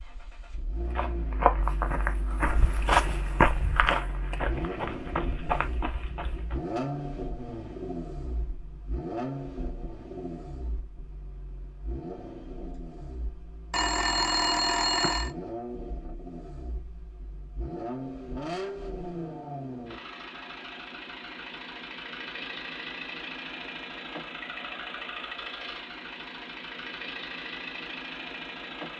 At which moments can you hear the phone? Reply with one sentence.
You can hear the phone from 13.7 to 15.3 s.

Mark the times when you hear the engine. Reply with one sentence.
You can hear the engine from 0.0 to 28.9 s.